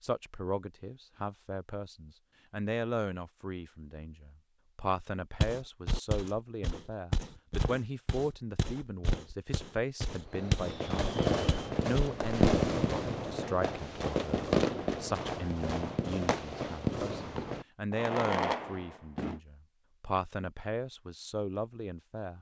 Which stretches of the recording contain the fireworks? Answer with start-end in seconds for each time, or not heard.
10.3-19.4.